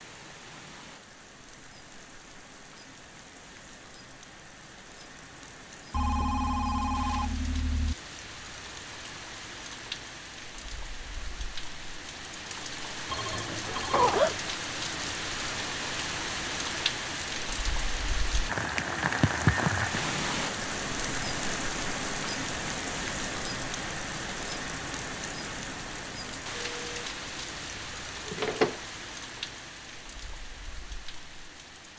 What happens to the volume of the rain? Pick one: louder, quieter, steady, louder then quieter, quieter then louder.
louder then quieter.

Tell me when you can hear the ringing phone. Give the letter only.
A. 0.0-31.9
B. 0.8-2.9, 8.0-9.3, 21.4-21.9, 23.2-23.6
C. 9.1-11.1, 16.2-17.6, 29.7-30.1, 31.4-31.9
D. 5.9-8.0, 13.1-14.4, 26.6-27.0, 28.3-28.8
D.